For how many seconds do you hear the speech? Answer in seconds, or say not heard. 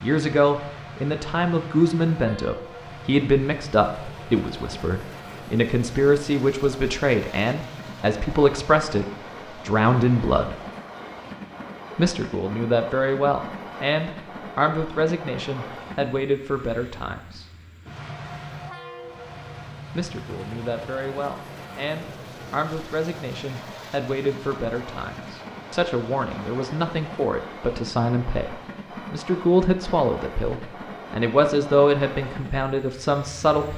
30 s.